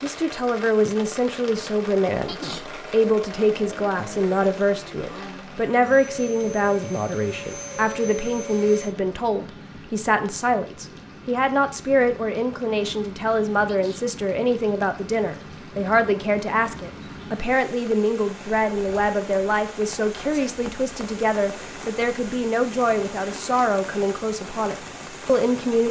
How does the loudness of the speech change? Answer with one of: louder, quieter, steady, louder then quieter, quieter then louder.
steady.